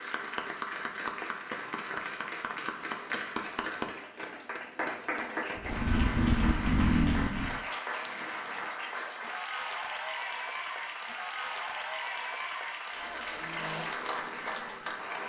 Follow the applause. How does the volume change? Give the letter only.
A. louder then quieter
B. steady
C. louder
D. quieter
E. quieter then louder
B.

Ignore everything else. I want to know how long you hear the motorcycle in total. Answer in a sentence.
You can hear the motorcycle for 2 seconds altogether.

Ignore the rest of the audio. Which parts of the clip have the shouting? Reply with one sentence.
The shouting can't be heard in this clip.